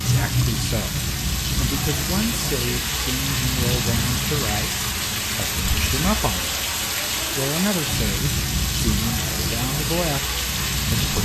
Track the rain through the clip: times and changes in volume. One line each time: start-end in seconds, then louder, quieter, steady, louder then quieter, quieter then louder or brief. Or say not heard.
0.0-11.2 steady.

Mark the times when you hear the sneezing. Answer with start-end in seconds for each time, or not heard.
not heard.